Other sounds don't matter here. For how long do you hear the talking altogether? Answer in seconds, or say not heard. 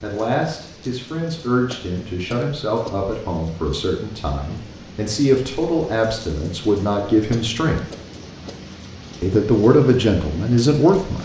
10 s.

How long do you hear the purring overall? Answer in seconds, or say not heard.
not heard.